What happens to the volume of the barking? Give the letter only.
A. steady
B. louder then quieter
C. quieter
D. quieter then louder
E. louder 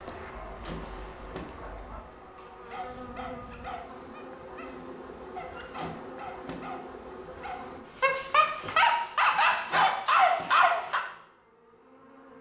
E.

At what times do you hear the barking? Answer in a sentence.
The barking can be heard from 0.2 to 11.0 s.